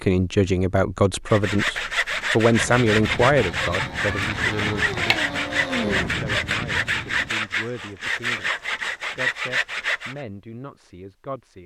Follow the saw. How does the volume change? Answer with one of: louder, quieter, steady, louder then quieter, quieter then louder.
steady.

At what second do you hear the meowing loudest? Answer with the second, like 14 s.
6 s.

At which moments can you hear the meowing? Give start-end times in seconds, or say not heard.
4.0-6.1.